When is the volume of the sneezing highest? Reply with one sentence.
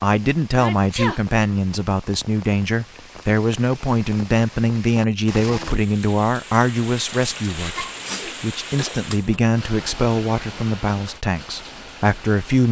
The loudest moment of the sneezing is at 1 second.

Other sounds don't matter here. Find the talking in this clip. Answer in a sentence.
The talking can be heard from 0.0 to 12.6 s.